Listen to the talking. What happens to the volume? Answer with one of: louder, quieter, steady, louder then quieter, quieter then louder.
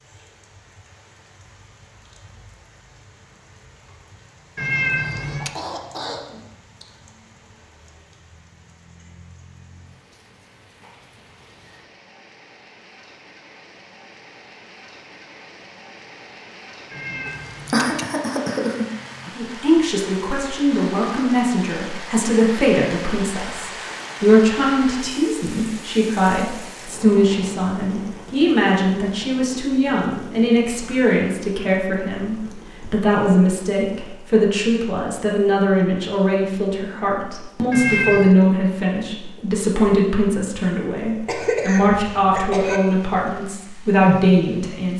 steady.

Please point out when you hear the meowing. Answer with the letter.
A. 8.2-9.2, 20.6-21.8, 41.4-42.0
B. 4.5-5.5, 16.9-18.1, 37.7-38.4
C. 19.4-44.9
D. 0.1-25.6
B.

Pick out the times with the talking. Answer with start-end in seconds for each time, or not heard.
19.4-44.9.